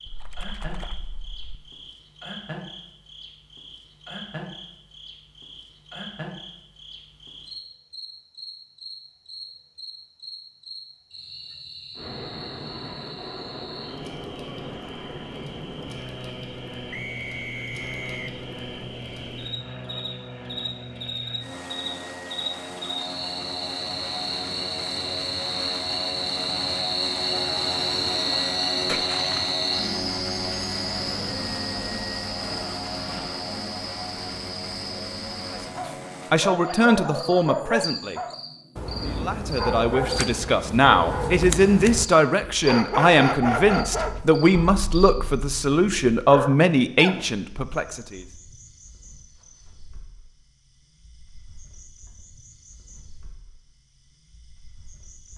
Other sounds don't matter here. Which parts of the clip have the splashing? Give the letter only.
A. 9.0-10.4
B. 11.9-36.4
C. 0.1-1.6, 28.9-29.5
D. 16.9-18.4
C.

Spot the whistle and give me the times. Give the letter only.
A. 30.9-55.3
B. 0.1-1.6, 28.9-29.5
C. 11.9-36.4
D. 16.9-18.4
D.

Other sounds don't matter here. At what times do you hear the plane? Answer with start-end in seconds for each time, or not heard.
11.9-36.4.